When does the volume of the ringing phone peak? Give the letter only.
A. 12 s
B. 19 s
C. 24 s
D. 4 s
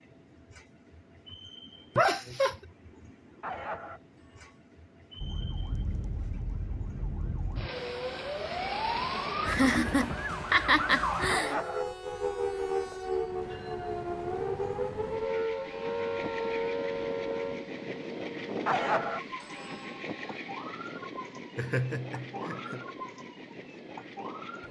B.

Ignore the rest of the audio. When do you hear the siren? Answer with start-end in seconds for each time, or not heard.
5.2-24.6.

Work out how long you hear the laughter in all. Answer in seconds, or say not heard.
4 s.